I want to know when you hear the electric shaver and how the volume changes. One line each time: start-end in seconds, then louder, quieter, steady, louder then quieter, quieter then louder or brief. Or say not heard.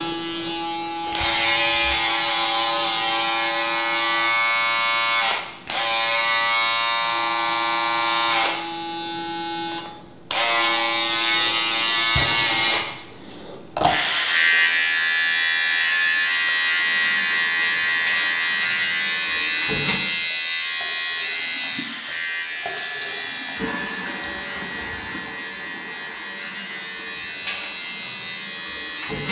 0.0-29.2 quieter.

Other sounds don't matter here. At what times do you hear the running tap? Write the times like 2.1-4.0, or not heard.
16.8-29.2.